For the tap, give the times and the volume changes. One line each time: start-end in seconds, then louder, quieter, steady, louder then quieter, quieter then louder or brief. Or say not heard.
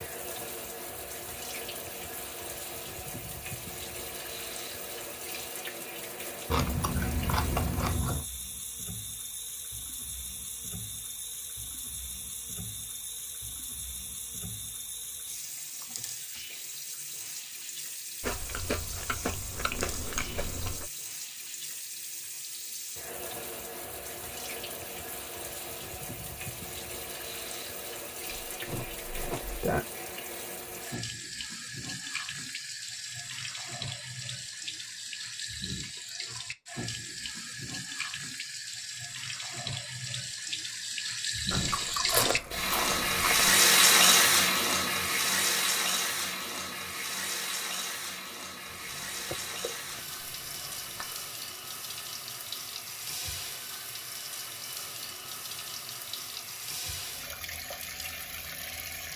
0.0-59.1 louder then quieter.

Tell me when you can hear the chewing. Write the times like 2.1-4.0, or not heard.
6.5-8.2, 18.2-20.9, 28.4-29.8, 41.5-43.5, 48.6-51.3.